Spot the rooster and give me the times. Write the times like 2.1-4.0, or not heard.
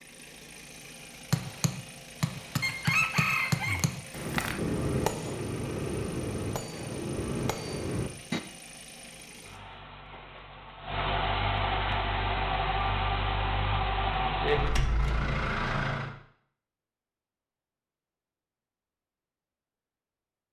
2.6-4.5.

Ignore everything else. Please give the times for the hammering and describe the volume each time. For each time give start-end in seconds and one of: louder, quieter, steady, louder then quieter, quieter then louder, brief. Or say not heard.
1.3-8.4 steady.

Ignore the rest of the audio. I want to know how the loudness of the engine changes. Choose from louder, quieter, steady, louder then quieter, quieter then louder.
louder.